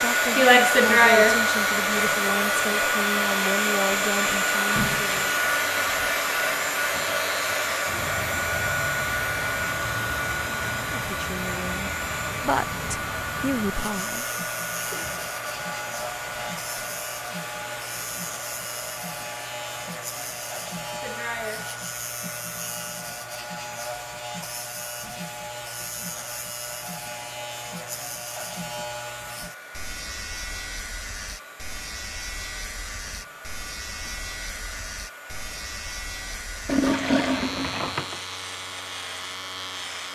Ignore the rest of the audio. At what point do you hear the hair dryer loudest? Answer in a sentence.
The loudest moment of the hair dryer is at 1 second.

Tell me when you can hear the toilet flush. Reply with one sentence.
You can hear the toilet flush from 36.6 to 38.2 s.